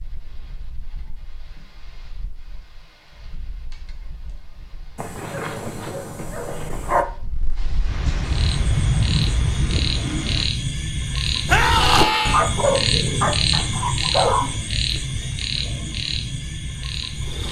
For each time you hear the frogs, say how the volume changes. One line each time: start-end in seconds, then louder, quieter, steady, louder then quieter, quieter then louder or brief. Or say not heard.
8.2-17.4 louder then quieter.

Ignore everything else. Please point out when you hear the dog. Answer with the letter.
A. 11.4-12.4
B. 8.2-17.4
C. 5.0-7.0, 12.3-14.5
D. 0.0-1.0
C.